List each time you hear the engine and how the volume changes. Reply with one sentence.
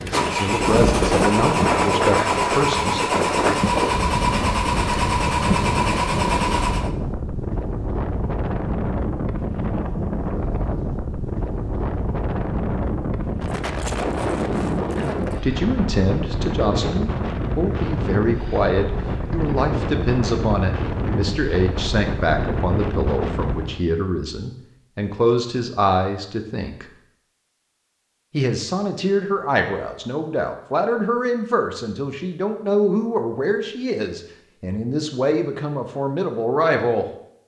You can hear the engine from 0.0 to 6.9 s, at a steady volume.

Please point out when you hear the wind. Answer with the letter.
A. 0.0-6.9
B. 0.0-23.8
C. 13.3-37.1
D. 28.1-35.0
B.